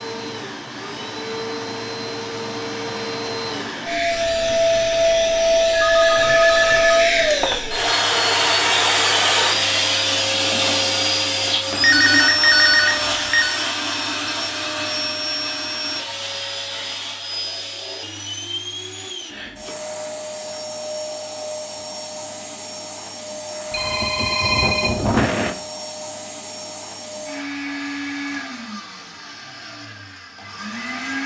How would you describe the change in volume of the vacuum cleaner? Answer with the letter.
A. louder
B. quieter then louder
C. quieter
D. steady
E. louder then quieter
C.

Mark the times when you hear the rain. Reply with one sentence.
You can't hear the rain here.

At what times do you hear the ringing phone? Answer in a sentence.
You can hear the ringing phone from 5.7 to 7.6 s, from 11.8 to 13.6 s and from 23.7 to 25.5 s.